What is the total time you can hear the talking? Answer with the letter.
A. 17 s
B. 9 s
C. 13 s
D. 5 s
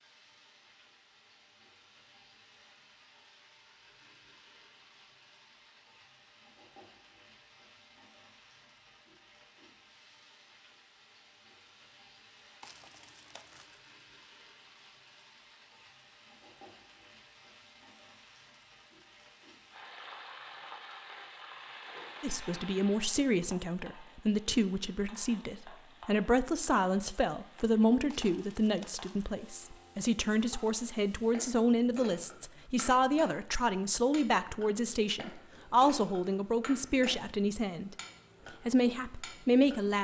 A.